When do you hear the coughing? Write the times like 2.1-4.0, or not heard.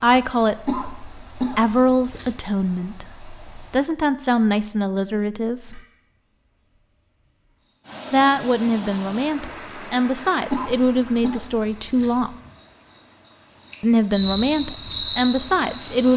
0.7-2.4, 10.4-12.2.